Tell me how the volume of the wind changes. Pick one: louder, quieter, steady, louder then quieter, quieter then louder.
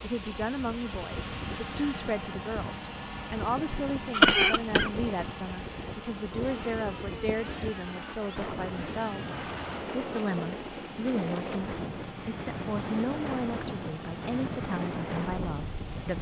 louder.